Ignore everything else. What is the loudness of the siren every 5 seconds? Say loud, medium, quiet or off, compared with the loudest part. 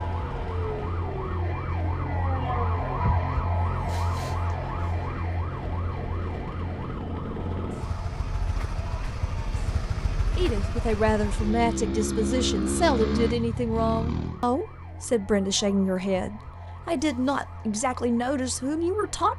loud, medium, quiet, quiet.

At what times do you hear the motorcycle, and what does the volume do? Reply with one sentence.
The motorcycle can be heard from 0.0 to 14.4 s, getting louder.